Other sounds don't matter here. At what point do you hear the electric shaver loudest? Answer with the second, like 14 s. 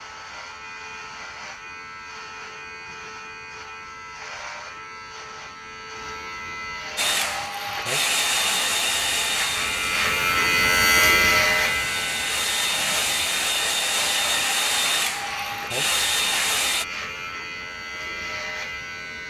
11 s.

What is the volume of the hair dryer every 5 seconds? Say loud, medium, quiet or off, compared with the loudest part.
off, loud, loud, loud.